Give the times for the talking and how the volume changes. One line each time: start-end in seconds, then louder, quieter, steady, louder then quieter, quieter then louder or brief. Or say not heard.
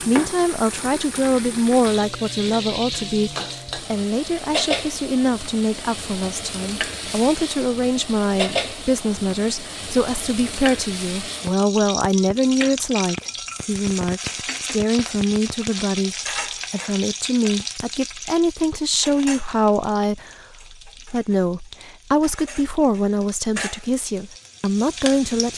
0.0-25.5 steady.